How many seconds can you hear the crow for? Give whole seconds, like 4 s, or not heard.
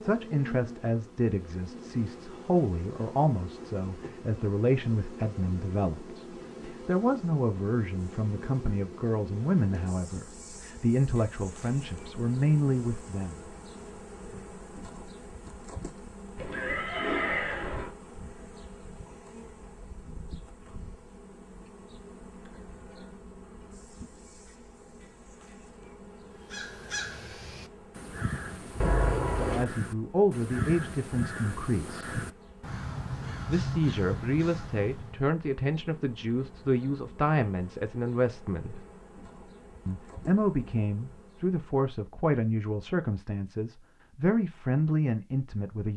9 s.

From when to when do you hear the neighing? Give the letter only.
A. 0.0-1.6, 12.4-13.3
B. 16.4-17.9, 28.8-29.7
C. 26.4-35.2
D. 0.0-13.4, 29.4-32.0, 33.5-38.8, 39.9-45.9
B.